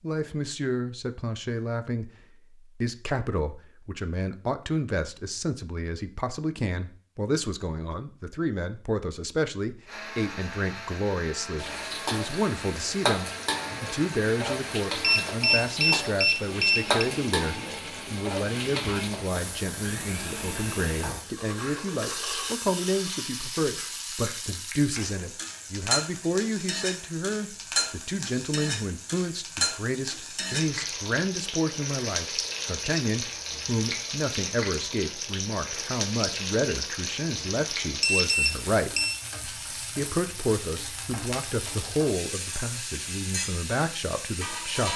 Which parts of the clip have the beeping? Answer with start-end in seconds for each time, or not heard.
15.0-17.1, 38.0-39.1.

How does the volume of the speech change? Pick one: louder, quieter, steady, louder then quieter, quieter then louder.
steady.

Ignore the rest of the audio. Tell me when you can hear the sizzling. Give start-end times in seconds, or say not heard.
11.6-44.9.